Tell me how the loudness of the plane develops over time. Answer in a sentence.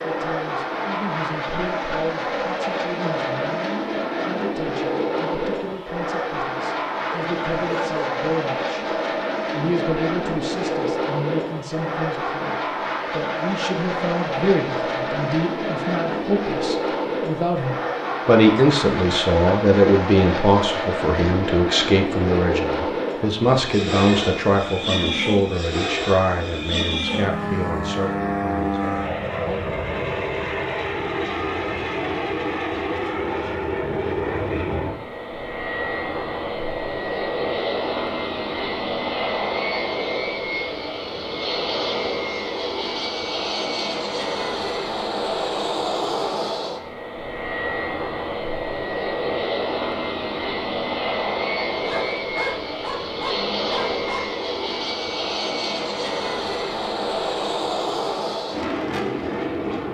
The loudness of the plane stays about the same.